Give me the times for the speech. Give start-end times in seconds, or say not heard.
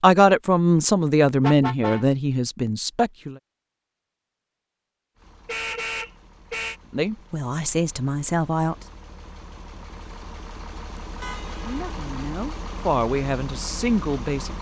0.0-3.4, 6.9-8.8, 11.6-14.5.